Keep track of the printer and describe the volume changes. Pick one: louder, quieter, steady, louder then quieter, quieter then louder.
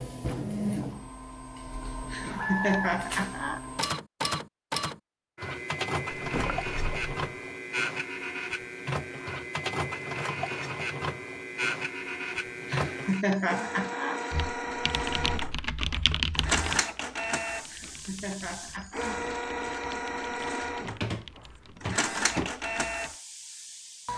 steady.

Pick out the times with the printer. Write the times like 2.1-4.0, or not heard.
0.0-24.1.